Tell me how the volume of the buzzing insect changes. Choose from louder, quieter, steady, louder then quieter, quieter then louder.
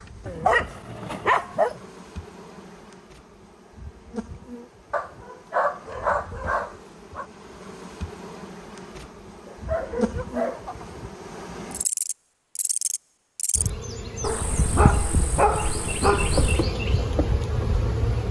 louder.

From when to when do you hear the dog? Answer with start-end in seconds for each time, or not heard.
0.2-1.8, 4.9-7.2, 9.4-10.9, 14.2-16.6.